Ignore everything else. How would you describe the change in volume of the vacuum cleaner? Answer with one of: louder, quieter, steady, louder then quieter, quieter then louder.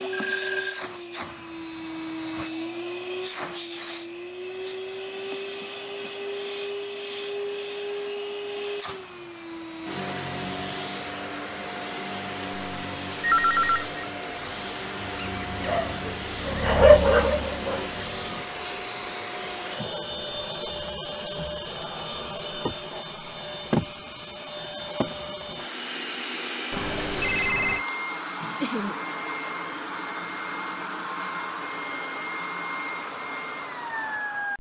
steady.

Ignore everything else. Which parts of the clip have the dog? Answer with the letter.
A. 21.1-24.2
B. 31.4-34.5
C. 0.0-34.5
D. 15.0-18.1
D.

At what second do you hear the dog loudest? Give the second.
17 s.